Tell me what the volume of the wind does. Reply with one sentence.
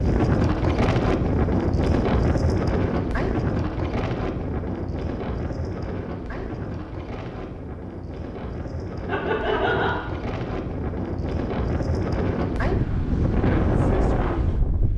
The volume of the wind goes down, then up.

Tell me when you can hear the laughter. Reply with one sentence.
The laughter can be heard from 9.1 to 10.1 s.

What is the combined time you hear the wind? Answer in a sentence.
The wind can be heard for 15 seconds in total.